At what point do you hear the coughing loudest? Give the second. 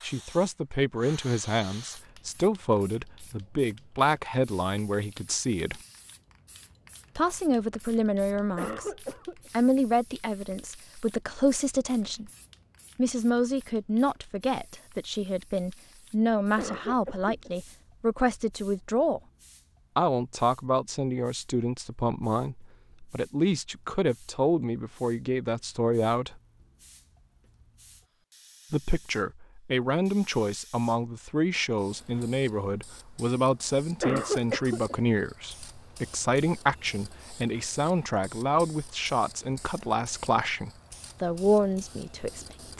34 s.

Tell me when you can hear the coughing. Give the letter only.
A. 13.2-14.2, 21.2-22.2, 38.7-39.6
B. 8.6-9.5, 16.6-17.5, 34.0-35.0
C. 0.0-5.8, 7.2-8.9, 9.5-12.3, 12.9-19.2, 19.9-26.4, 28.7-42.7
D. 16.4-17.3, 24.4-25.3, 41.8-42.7
B.